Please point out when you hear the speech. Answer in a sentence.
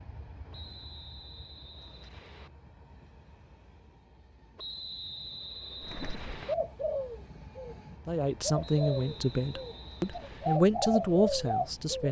The speech can be heard from 8.1 to 12.0 s.